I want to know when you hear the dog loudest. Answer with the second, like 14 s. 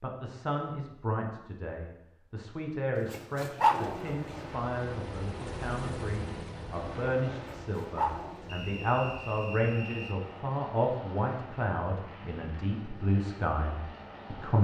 4 s.